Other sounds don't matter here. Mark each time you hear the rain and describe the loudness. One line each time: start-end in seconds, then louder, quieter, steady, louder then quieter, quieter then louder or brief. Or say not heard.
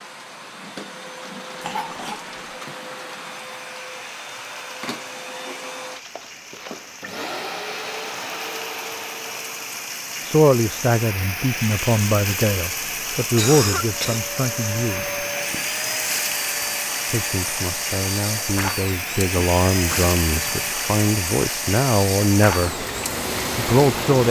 0.0-24.2 louder.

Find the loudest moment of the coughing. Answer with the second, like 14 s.
14 s.